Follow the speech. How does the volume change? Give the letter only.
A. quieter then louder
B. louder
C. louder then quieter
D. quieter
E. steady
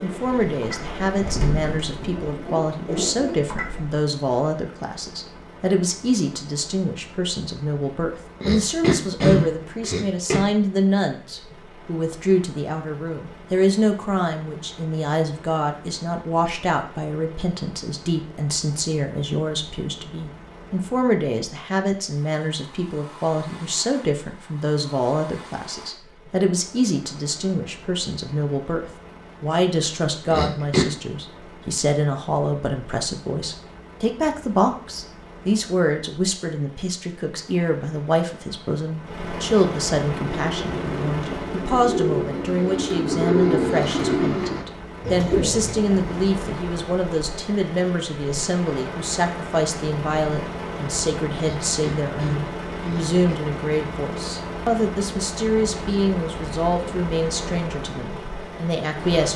E.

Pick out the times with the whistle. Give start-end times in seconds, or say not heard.
not heard.